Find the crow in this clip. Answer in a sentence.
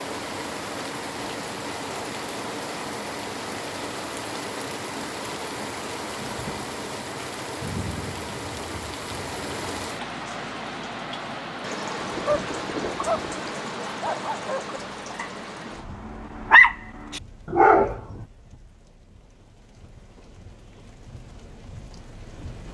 The crow can't be heard in this clip.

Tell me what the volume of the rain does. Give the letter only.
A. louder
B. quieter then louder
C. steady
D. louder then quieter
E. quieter
E.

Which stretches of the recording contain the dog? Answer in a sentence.
You can hear the dog from 11.9 to 18.0 s.